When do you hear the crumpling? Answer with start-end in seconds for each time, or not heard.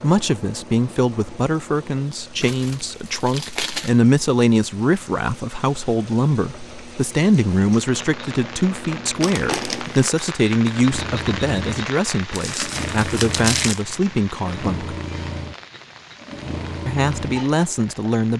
2.4-4.0, 9.2-10.1, 12.3-13.8.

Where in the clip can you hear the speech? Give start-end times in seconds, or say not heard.
0.0-14.9, 16.9-18.3.